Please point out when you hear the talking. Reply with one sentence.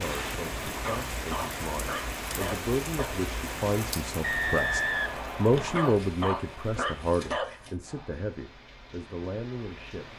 The talking can be heard from 0.0 to 10.1 s.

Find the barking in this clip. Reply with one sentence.
You can hear the barking from 0.6 to 3.1 s and from 5.5 to 7.7 s.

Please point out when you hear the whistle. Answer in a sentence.
The whistle can be heard from 4.2 to 5.8 s.